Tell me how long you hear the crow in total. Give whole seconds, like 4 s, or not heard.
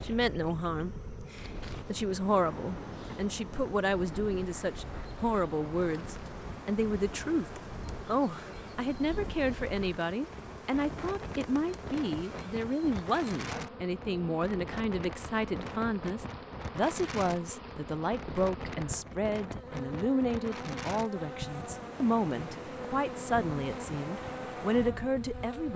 not heard.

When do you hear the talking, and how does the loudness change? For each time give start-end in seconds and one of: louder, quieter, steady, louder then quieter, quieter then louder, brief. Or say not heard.
0.0-25.7 steady.